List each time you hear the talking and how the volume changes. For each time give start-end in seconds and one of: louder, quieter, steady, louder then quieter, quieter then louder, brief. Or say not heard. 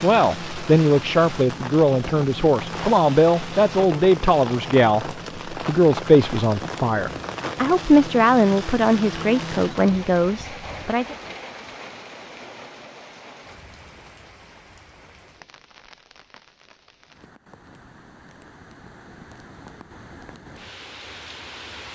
0.0-11.2 steady.